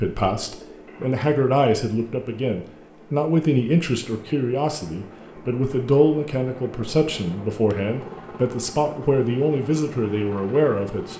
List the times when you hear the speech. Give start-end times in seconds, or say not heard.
0.0-11.1.